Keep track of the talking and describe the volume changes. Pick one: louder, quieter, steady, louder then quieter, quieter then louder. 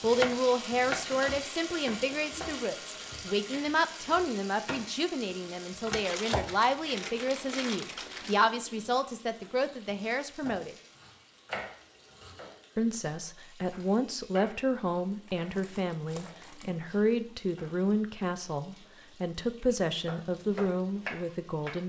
steady.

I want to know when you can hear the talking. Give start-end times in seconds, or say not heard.
0.0-10.8, 12.8-21.8.